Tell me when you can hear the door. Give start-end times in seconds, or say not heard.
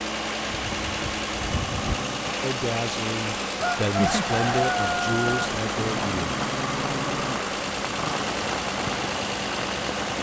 not heard.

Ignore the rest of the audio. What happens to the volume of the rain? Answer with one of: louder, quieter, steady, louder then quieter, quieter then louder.
steady.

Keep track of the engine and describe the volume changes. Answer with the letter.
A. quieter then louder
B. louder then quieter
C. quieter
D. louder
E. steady
E.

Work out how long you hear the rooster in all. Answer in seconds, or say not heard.
2 s.